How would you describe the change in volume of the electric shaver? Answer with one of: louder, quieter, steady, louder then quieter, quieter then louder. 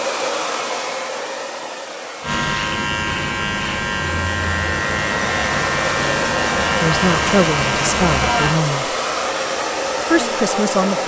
quieter.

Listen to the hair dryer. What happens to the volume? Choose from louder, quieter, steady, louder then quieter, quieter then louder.
quieter then louder.